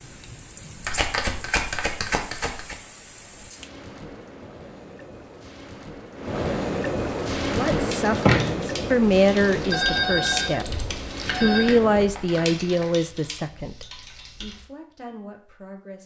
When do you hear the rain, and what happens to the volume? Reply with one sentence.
The rain can be heard from 0.0 to 12.1 s, getting louder then quieter.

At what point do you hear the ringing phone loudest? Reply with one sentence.
The volume of the ringing phone peaks at 10 seconds.